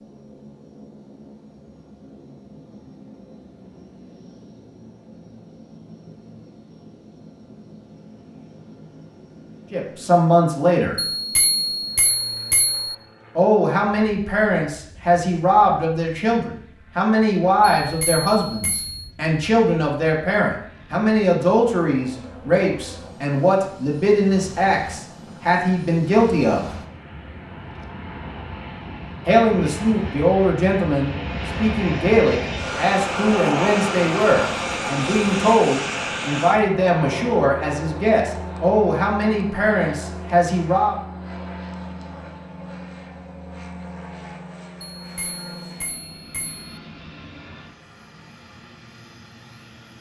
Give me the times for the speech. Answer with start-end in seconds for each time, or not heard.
9.7-10.9, 13.3-26.6, 29.2-41.0.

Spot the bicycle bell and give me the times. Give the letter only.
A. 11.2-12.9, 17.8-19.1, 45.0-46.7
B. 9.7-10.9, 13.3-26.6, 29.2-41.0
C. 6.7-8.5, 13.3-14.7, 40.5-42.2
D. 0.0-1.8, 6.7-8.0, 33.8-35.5
A.